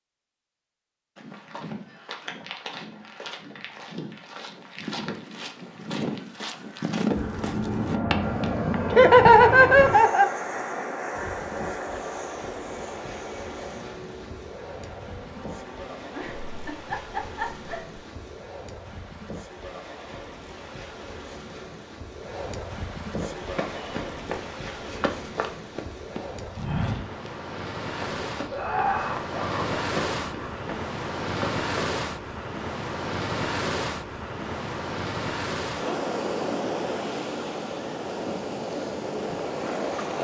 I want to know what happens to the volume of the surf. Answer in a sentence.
The volume of the surf goes up.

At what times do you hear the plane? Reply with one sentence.
You can hear the plane from 7.1 to 16.6 s.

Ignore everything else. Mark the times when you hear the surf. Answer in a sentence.
You can hear the surf from 8.2 to 40.1 s.